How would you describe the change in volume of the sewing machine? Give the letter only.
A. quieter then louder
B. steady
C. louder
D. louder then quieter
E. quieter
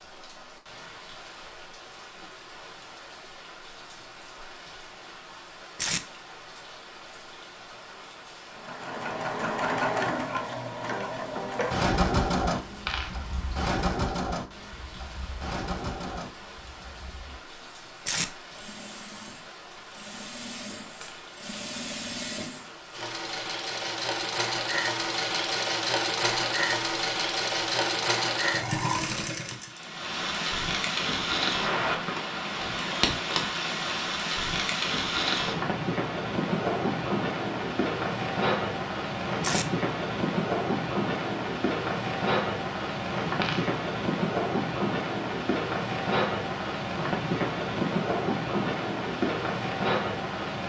A.